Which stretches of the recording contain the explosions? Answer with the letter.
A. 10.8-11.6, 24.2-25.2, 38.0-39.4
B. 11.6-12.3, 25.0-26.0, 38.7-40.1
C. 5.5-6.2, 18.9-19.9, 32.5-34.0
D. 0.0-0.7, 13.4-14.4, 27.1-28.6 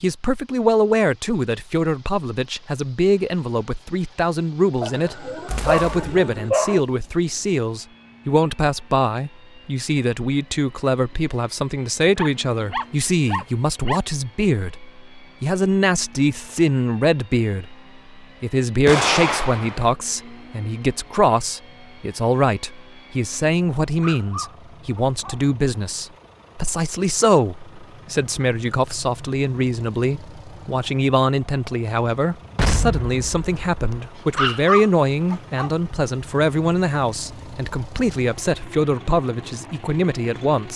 C.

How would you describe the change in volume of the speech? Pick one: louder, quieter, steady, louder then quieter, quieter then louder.
steady.